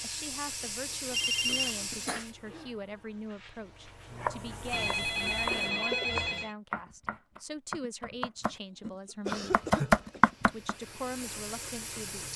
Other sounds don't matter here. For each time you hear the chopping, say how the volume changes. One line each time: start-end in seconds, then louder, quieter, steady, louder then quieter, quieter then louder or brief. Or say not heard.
4.1-10.8 louder.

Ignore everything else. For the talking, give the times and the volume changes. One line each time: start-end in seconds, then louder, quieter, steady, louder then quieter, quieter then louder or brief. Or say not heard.
0.0-9.6 steady
10.4-12.3 brief.